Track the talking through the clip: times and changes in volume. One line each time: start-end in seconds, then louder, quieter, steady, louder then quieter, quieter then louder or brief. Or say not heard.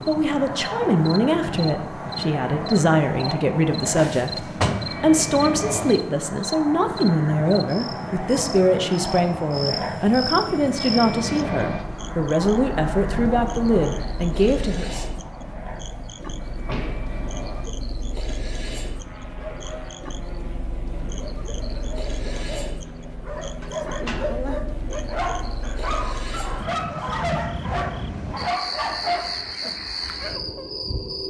0.1-15.1 steady.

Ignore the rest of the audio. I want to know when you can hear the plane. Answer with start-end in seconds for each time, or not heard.
0.0-25.5.